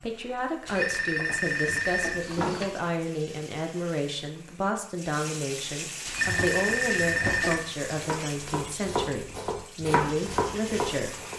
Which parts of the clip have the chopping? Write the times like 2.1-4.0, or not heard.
6.1-11.3.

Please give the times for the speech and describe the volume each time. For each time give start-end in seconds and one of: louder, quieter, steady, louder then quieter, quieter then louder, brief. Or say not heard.
0.0-11.3 steady.